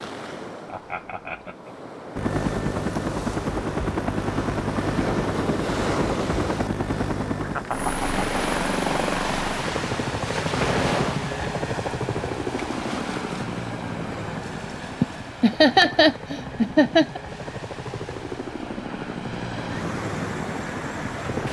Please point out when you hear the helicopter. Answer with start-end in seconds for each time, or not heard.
2.1-21.4.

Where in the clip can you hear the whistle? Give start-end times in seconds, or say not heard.
not heard.